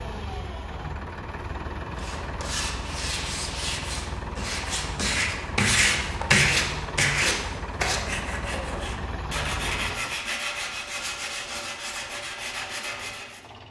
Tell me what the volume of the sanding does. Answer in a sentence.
The volume of the sanding goes up, then down.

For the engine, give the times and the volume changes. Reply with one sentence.
The engine can be heard from 0.0 to 13.6 s, getting quieter.